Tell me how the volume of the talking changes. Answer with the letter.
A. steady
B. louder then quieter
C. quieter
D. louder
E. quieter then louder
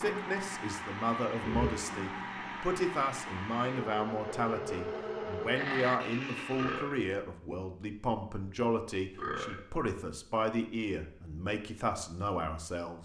A.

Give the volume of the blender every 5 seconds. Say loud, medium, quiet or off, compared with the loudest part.
loud, loud, off.